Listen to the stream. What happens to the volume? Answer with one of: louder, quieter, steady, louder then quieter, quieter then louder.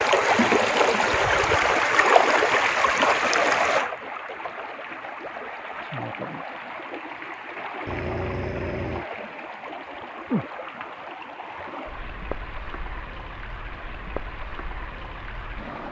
quieter.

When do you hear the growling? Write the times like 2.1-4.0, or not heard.
7.8-9.1.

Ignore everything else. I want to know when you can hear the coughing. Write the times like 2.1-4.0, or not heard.
not heard.